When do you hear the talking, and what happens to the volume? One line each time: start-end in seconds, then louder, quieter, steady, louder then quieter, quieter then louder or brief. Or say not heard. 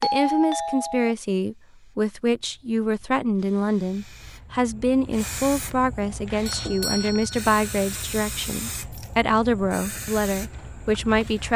0.0-11.5 steady.